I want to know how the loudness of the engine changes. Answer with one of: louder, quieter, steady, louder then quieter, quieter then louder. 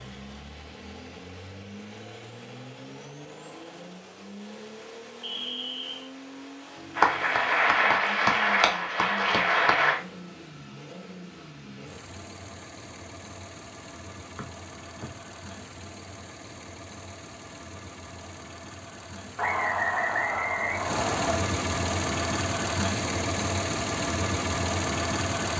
louder.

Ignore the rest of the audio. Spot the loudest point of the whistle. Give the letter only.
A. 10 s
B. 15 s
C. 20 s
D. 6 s
C.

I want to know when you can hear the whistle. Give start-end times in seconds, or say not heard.
5.2-6.1, 14.3-15.1, 19.4-21.4.